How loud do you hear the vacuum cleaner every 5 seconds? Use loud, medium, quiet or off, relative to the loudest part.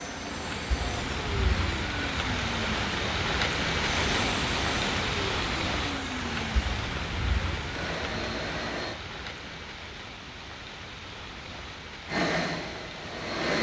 medium, medium, loud.